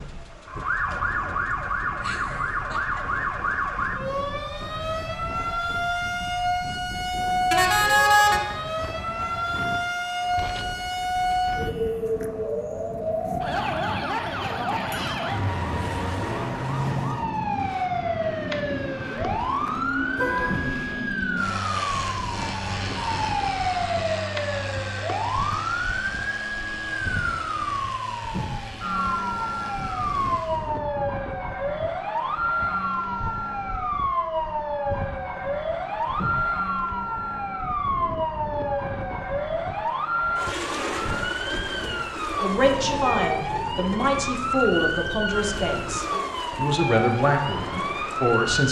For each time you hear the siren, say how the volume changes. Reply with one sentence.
You can hear the siren from 0.0 to 48.6 s, at a steady volume.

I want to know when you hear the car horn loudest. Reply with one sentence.
The loudest moment of the car horn is at 8 seconds.